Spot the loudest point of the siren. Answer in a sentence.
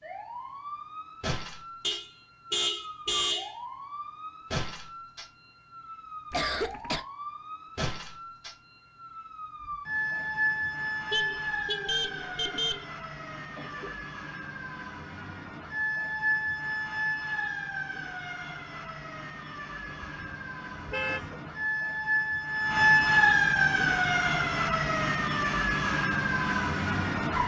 The volume of the siren peaks at 23 seconds.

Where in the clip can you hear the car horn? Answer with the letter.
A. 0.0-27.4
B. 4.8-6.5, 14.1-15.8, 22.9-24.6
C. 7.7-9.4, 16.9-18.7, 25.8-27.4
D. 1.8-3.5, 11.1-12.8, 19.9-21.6
D.